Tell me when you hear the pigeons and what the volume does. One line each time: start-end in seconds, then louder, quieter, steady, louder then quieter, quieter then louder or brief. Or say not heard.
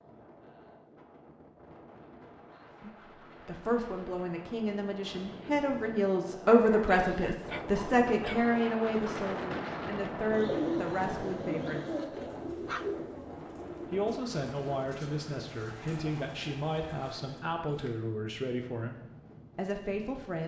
10.3-18.0 quieter.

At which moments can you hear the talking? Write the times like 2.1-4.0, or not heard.
2.8-12.0, 13.9-20.4.